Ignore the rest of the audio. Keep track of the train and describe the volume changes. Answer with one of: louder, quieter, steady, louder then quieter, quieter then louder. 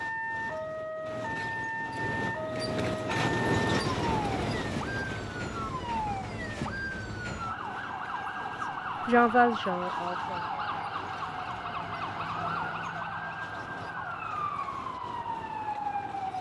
quieter.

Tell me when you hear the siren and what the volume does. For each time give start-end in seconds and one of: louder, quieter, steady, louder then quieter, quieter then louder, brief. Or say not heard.
0.0-16.3 steady.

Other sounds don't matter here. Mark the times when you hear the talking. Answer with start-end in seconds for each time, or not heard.
9.1-10.6.